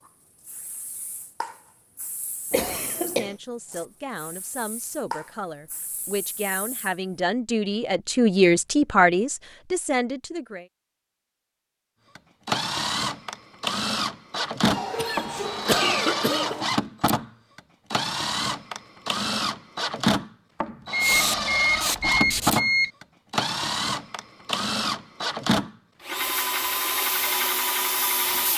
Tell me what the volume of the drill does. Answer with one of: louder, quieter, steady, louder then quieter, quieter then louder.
steady.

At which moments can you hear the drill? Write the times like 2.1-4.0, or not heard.
12.2-28.5.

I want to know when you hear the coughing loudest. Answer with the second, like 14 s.
16 s.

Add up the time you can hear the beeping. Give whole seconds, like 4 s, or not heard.
2 s.